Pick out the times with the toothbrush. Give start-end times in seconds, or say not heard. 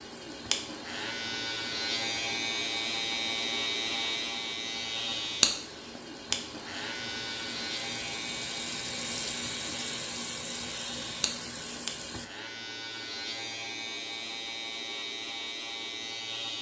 not heard.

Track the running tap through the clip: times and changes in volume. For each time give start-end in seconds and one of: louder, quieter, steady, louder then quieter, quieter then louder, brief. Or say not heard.
0.0-12.3 louder.